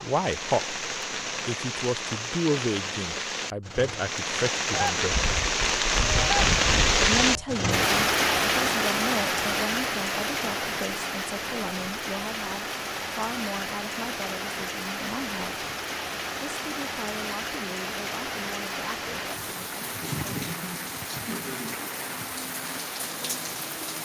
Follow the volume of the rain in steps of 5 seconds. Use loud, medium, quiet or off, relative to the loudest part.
medium, loud, medium, medium, medium.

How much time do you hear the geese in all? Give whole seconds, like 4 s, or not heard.
3 s.